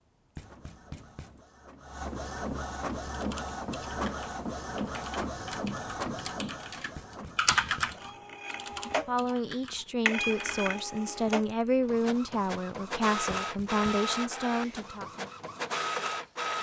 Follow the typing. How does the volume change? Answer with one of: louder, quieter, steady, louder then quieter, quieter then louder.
louder then quieter.